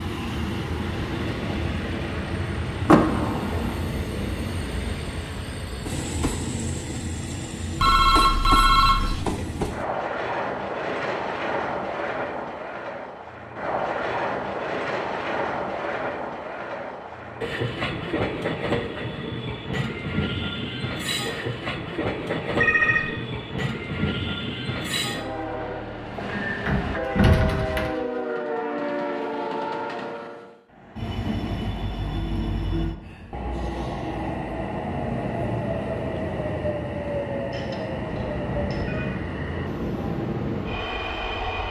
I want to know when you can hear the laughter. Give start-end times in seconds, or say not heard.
not heard.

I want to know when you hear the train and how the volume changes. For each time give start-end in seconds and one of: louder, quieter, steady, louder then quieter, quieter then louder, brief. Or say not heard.
0.0-41.6 steady.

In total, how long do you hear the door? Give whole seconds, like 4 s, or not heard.
2 s.